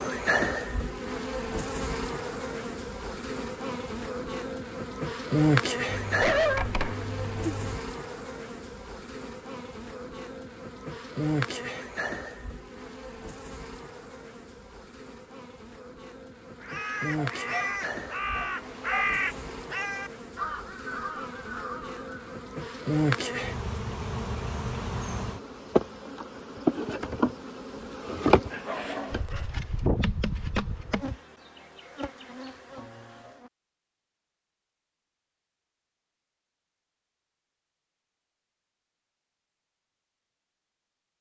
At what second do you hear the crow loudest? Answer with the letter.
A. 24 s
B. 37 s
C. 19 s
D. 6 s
C.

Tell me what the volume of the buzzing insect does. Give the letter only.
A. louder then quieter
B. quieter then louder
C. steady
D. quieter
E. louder
B.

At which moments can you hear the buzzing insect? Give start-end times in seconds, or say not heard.
0.0-33.0.